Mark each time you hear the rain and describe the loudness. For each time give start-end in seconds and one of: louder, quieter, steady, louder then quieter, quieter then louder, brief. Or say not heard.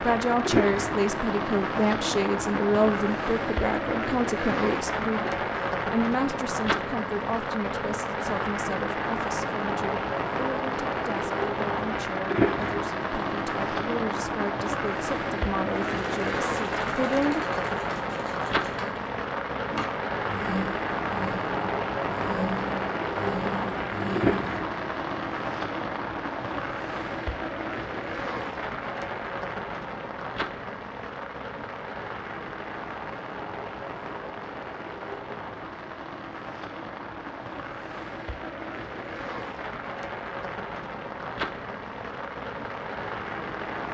0.0-43.8 quieter.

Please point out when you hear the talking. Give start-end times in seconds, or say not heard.
0.0-17.4.